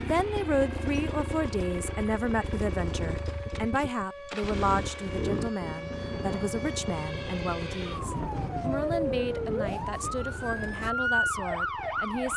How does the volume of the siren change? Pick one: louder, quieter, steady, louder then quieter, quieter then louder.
louder.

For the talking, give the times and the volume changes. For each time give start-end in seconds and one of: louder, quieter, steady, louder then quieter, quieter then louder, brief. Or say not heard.
0.0-12.3 quieter.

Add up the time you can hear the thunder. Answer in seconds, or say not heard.
4 s.